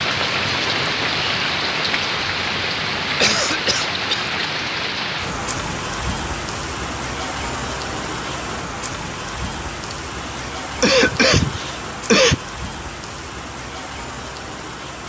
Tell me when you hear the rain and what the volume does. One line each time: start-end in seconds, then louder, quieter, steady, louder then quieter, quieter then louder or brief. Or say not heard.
0.0-15.0 quieter.